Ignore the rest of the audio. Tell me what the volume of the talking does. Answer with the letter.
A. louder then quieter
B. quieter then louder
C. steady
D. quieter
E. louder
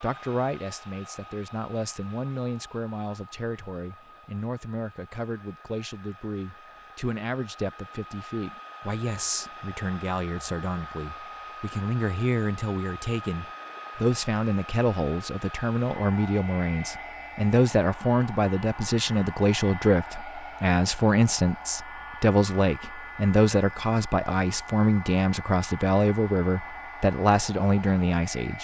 E.